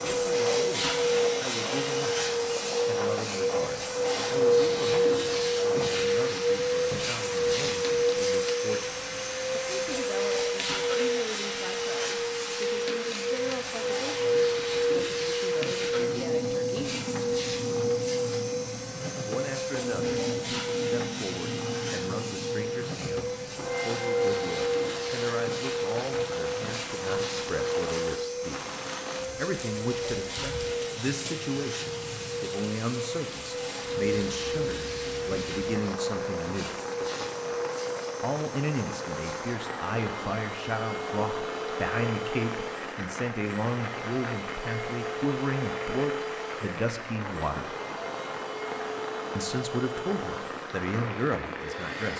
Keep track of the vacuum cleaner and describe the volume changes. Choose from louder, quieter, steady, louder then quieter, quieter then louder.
quieter.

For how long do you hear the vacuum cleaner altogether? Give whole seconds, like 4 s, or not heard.
52 s.